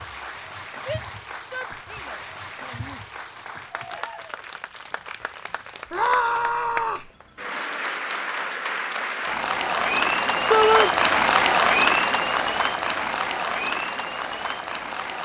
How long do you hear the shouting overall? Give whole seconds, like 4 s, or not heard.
4 s.